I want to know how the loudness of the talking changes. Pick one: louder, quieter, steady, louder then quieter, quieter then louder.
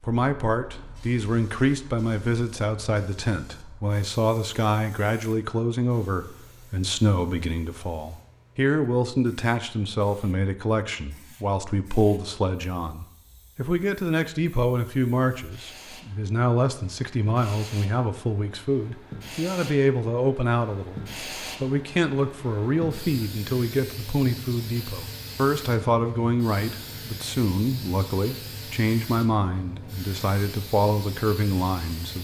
steady.